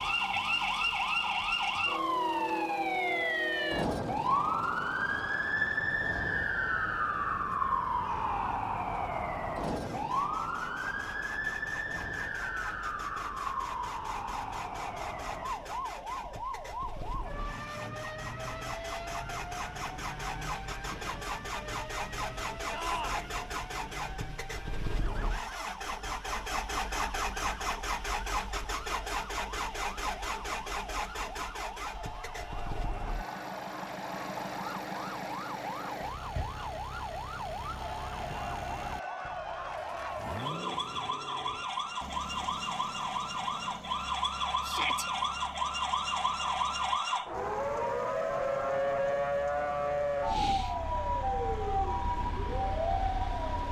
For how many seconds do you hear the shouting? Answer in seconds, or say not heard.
2 s.